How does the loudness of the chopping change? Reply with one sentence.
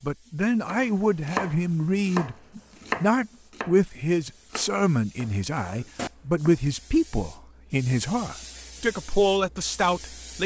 The volume of the chopping goes down.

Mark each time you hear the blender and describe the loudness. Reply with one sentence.
You can't hear the blender here.